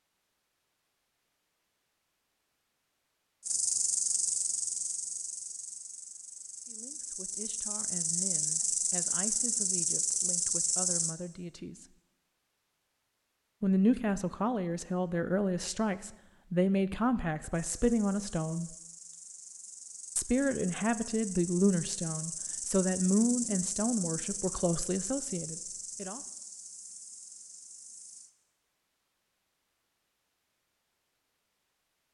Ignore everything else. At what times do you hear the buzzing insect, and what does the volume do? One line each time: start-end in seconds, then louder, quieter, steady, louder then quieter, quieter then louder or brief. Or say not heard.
3.4-11.2 quieter then louder
17.5-28.3 louder then quieter.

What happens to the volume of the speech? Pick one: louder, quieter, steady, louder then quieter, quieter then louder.
louder.